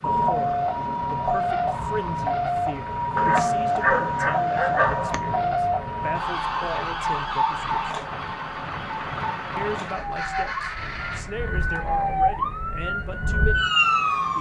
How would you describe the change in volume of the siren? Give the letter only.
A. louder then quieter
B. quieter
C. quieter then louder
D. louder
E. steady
C.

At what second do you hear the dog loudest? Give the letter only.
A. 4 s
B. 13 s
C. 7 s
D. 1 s
A.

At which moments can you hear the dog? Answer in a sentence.
The dog can be heard from 3.1 to 5.2 s.